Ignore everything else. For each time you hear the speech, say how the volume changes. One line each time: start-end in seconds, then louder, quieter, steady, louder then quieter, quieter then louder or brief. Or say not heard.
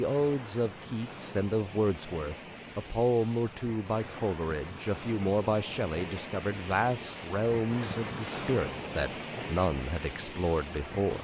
0.0-11.1 steady.